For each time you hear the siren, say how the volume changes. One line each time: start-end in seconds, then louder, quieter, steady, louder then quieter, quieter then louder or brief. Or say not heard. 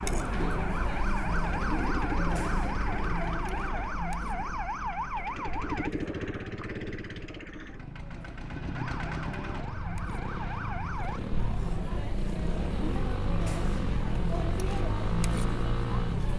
0.0-5.9 steady
8.7-11.2 brief.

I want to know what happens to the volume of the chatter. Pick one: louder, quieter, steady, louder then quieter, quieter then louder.
quieter then louder.